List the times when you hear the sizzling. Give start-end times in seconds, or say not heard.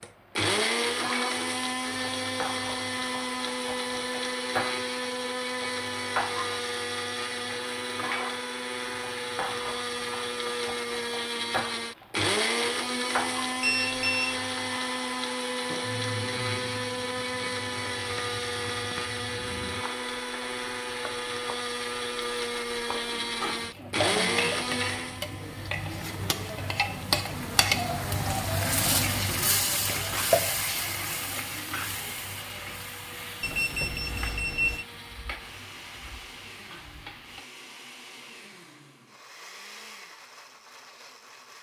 0.0-37.5.